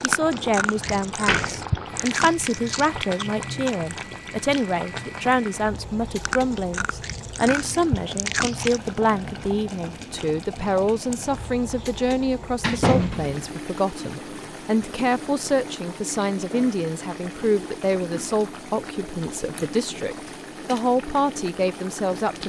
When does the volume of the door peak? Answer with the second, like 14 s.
13 s.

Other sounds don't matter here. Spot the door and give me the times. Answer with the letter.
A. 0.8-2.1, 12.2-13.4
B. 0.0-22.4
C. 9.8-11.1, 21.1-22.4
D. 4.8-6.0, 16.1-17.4
A.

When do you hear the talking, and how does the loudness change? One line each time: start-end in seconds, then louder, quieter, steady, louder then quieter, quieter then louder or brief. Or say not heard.
0.0-22.4 steady.